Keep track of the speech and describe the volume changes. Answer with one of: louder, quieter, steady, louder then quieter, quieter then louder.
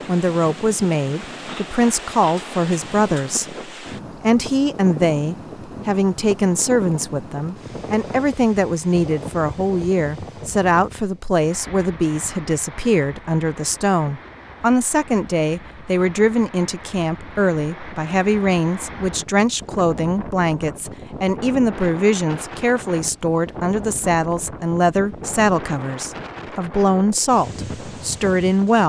steady.